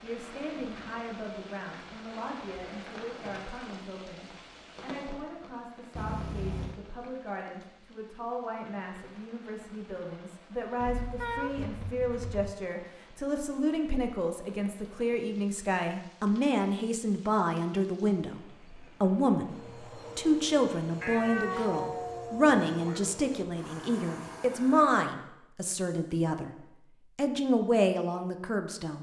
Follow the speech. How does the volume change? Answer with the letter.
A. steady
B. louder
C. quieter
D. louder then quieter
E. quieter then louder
B.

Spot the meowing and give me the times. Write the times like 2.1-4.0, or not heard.
6.0-6.8, 10.8-12.6, 21.0-23.1.